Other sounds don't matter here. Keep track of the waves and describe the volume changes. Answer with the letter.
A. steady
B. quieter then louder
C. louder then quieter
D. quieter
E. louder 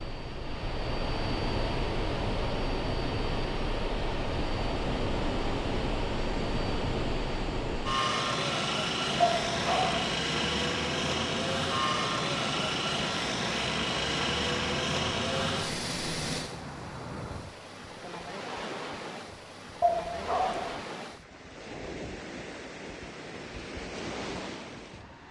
A.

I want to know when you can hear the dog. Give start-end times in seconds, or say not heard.
9.2-10.1, 19.8-20.8.